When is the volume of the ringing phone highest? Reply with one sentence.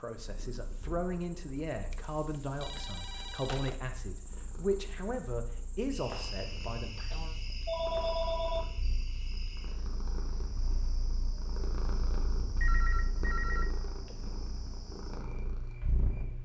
The loudest moment of the ringing phone is at 8 seconds.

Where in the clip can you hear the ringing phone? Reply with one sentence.
You can hear the ringing phone from 1.9 to 3.8 s, from 7.1 to 8.7 s and from 12.6 to 14.2 s.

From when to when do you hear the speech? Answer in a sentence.
You can hear the speech from 0.0 to 7.3 s.